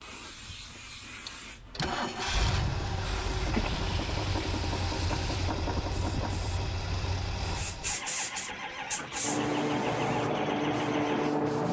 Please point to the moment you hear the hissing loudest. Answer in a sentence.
The volume of the hissing peaks at 11 seconds.